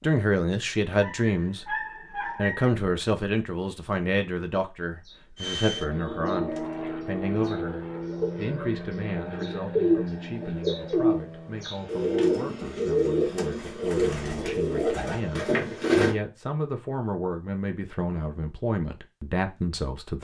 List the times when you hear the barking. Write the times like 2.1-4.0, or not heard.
1.0-2.7.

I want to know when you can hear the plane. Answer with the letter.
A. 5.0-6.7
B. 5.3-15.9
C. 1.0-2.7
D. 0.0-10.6
B.